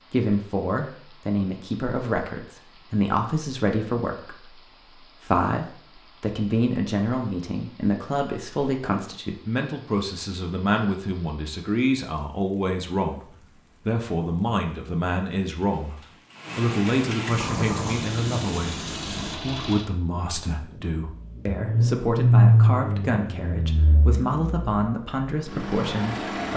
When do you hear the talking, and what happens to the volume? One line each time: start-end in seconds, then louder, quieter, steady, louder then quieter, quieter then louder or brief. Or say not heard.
0.1-13.2 steady
13.8-15.9 brief
16.6-26.5 steady.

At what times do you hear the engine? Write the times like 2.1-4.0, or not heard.
17.4-26.5.